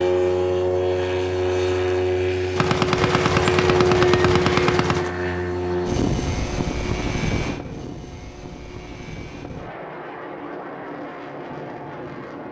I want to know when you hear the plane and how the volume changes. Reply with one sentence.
The plane can be heard from 0.0 to 12.4 s, getting quieter.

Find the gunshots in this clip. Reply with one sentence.
You can hear the gunshots from 2.5 to 5.2 s.